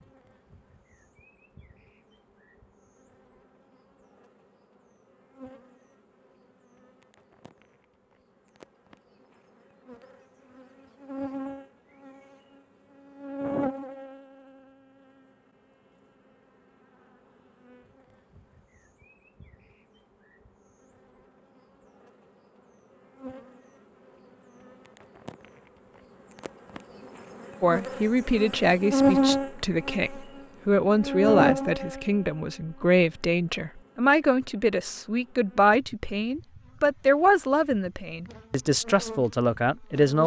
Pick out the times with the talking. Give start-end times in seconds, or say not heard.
27.6-40.2.